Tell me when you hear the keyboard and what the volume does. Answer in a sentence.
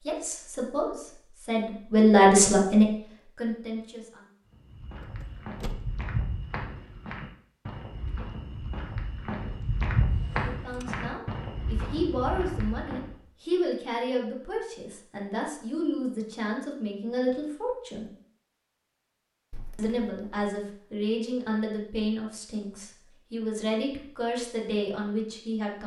You can't hear the keyboard here.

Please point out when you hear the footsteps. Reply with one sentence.
You can hear the footsteps from 4.5 to 13.2 s.